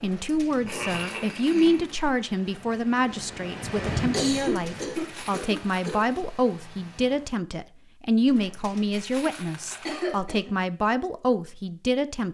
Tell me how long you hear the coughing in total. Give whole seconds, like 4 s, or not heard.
4 s.